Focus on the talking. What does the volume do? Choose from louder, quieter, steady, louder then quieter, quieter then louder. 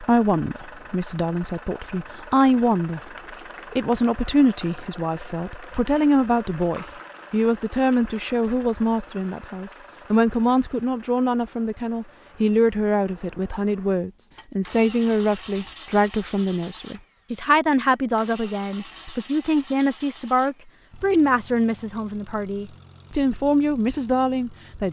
steady.